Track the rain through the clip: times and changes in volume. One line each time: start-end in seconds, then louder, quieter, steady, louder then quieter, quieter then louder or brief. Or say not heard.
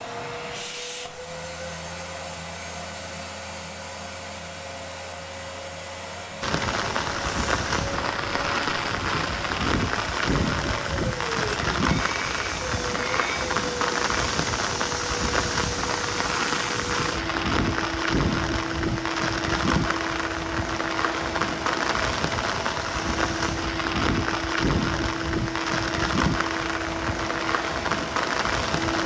6.4-29.0 steady.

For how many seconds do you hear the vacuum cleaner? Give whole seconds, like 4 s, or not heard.
29 s.